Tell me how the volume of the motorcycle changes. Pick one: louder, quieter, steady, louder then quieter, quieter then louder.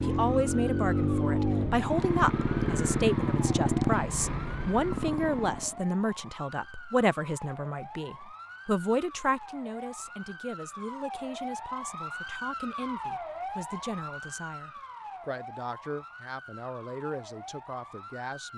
quieter.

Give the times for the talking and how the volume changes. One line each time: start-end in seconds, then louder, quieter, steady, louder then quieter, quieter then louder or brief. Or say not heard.
0.0-18.5 quieter.